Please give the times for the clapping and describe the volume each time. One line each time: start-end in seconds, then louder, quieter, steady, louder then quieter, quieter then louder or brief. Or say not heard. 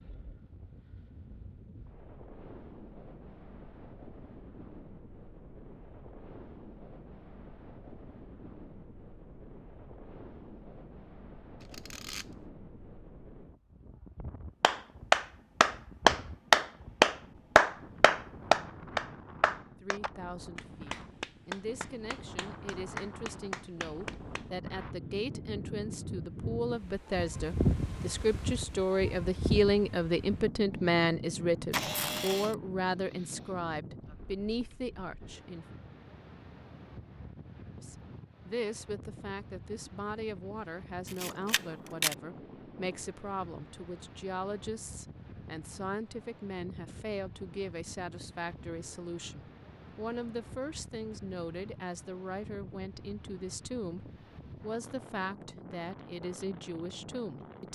14.6-24.4 quieter.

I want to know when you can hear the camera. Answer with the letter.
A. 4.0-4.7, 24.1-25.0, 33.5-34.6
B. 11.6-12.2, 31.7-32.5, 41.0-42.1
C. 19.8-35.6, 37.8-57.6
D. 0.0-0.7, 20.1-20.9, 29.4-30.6
B.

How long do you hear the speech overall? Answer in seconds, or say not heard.
36 s.